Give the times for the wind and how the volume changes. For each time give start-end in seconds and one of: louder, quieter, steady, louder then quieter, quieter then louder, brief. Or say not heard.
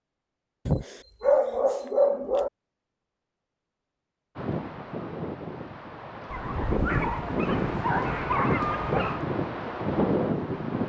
4.3-10.8 louder.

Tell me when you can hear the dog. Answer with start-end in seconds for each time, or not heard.
0.7-2.5, 6.3-9.2.